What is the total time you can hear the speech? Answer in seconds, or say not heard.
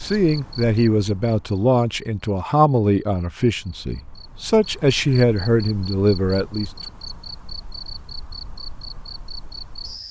7 s.